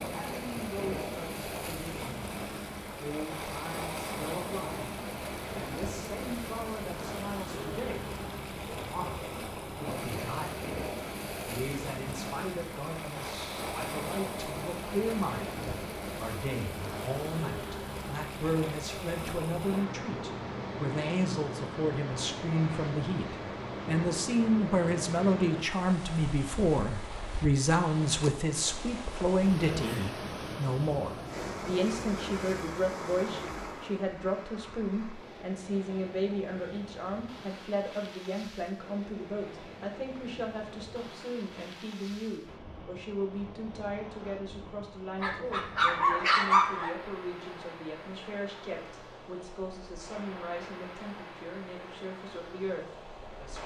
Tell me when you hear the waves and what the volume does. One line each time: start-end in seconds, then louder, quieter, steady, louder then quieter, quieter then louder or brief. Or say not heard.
0.0-53.6 quieter.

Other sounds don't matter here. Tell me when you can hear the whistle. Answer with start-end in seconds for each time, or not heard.
not heard.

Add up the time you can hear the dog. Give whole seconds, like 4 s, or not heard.
2 s.